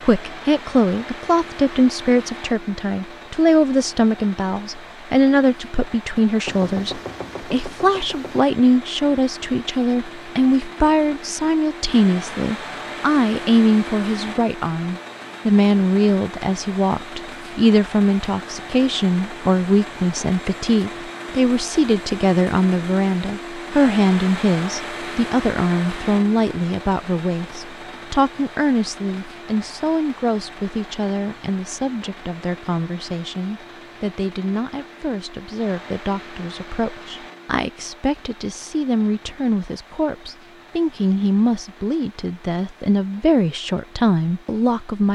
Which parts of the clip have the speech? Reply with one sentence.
You can hear the speech from 0.0 to 45.0 s.